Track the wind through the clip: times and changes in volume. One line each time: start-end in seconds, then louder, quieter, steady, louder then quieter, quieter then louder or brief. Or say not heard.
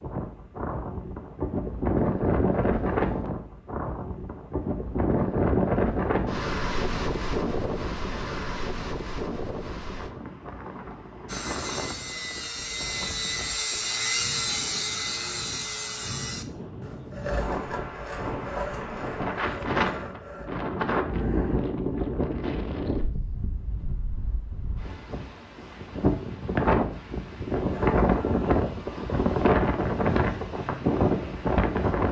0.0-32.0 quieter then louder.